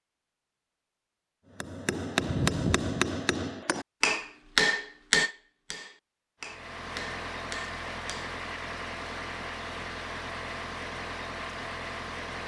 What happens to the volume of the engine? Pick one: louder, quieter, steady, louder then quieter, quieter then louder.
steady.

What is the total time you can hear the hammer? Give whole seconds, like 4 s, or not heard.
7 s.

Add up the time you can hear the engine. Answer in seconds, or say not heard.
6 s.